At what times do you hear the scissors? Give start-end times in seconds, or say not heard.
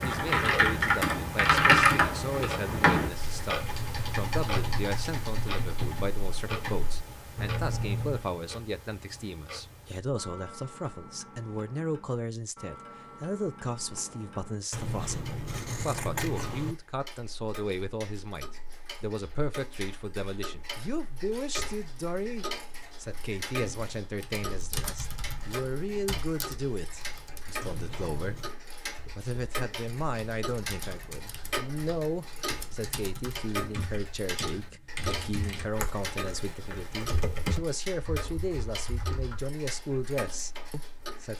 14.7-16.8, 27.6-28.6.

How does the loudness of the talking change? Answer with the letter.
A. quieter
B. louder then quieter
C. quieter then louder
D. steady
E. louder
D.